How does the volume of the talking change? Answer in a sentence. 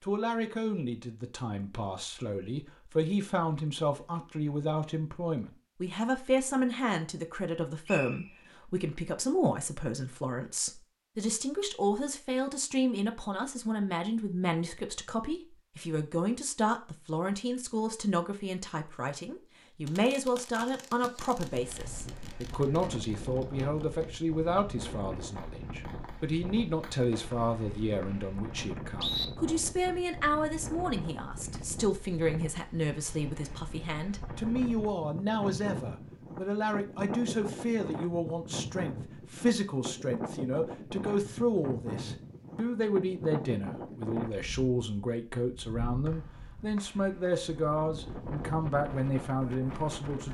The volume of the talking stays about the same.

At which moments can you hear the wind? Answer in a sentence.
The wind can be heard from 21.4 to 50.2 s.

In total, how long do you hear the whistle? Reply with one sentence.
The whistle can be heard for 4 seconds in total.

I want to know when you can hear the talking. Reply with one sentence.
The talking can be heard from 0.0 to 50.2 s.